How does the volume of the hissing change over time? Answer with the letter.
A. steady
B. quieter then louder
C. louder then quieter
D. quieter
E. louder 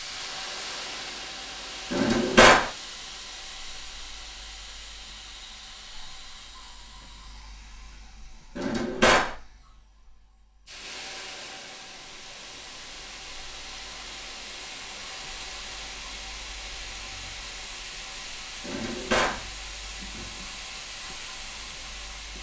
B.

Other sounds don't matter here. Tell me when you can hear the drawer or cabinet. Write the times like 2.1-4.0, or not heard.
1.9-2.7, 8.6-9.3, 18.6-19.4.